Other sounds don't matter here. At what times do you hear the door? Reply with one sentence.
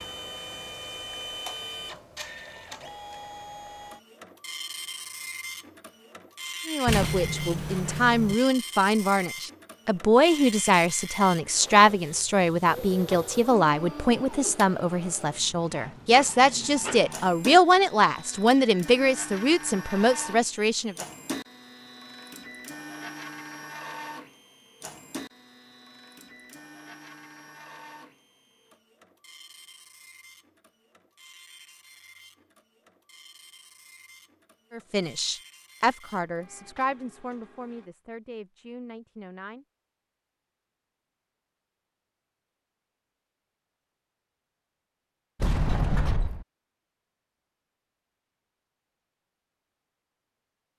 You can hear the door from 6.8 to 8.3 s and from 45.4 to 46.5 s.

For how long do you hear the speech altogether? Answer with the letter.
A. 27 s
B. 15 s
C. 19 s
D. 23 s
C.